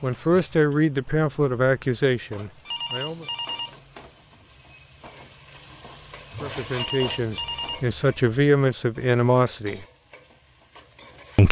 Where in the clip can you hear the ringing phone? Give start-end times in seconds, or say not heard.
2.6-3.8, 6.7-7.9.